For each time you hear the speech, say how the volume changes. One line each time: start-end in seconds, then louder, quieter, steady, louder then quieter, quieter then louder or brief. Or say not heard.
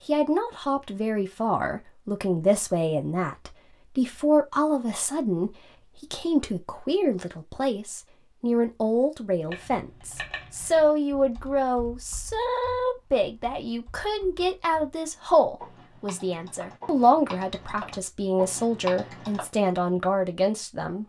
0.1-21.0 steady.